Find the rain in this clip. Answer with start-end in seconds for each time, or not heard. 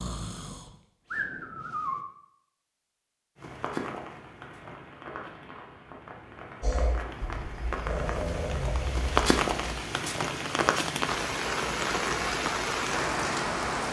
3.4-13.8.